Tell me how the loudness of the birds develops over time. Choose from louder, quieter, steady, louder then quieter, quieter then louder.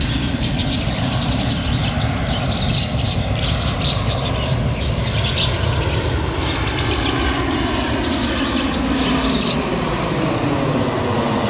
steady.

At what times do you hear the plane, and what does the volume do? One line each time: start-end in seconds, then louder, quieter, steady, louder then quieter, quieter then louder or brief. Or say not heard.
0.0-11.4 steady.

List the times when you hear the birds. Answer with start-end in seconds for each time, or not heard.
0.0-9.6.